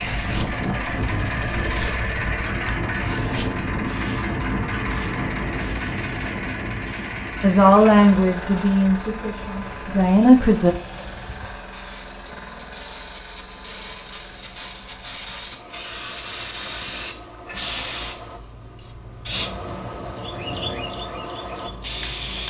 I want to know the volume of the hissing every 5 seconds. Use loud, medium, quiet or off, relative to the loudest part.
medium, quiet, quiet, loud, loud.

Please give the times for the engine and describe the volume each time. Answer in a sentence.
You can hear the engine from 0.0 to 22.4 s, getting quieter then louder.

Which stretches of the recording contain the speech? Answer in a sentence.
You can hear the speech from 7.4 to 10.8 s.